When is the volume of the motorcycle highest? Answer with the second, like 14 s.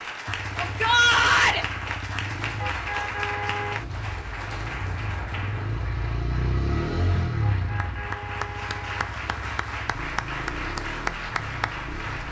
7 s.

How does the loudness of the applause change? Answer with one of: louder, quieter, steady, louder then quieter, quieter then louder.
quieter then louder.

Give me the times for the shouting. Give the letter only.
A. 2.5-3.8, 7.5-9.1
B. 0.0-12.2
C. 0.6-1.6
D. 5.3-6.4
C.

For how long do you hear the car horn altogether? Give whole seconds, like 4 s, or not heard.
3 s.